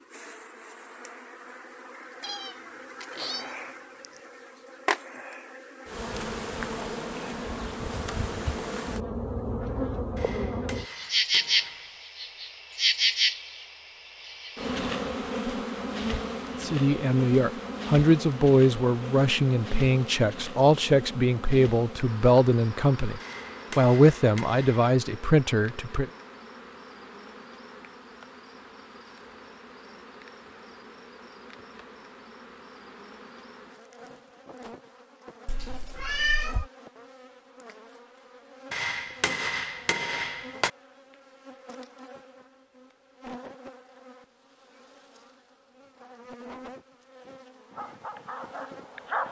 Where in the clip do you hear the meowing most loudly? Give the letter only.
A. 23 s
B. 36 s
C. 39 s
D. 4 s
B.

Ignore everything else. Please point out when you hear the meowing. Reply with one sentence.
You can hear the meowing from 2.2 to 4.2 s and from 35.5 to 36.7 s.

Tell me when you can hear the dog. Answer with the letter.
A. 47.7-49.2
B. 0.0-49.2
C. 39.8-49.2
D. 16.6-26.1
A.